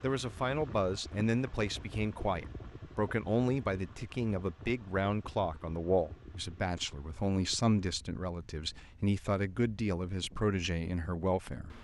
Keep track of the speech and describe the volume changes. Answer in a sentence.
The volume of the speech stays about the same.